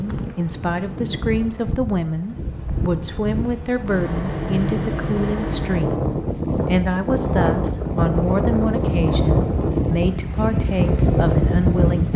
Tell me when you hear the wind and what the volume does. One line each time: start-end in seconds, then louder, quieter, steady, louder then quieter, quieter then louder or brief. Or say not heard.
0.0-12.1 louder.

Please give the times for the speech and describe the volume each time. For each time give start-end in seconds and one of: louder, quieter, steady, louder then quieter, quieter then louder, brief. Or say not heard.
0.0-12.1 steady.